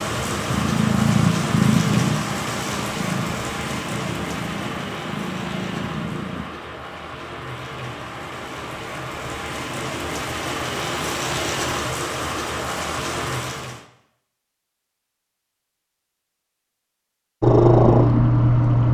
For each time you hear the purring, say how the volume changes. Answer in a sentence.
The purring can be heard from 0.0 to 6.5 s, getting quieter; and briefly from 17.4 to 18.8 s.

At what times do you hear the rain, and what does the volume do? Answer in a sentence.
You can hear the rain from 0.0 to 13.8 s, getting quieter then louder.